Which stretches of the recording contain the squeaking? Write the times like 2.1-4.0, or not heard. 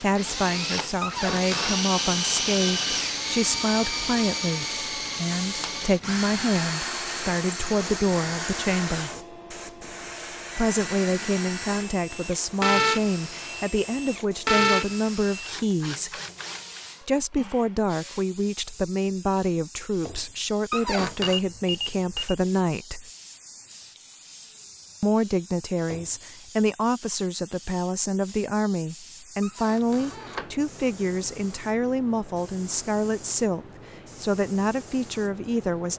1.0-1.9, 20.7-21.4, 29.4-30.6.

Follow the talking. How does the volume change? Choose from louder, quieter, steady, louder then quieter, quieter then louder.
steady.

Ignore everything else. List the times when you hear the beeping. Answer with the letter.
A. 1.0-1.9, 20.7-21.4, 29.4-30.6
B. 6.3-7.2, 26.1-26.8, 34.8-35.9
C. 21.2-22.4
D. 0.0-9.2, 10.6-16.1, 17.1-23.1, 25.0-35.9
C.